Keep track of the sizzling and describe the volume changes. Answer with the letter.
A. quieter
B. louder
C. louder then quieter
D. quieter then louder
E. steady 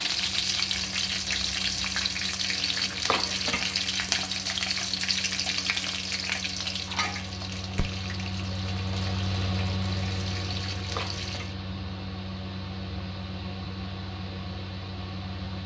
A.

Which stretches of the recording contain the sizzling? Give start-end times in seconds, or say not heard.
0.0-11.6.